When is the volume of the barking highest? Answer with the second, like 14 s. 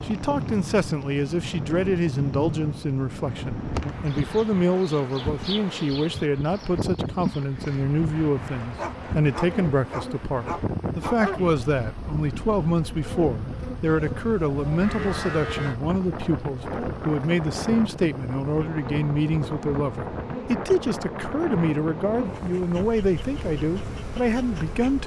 11 s.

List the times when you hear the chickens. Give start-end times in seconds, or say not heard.
not heard.